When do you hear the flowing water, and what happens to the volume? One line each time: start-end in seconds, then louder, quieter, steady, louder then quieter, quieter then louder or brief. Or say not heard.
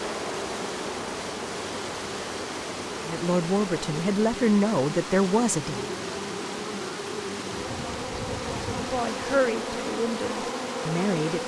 0.0-11.4 steady.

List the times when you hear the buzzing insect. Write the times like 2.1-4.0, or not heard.
0.0-11.4.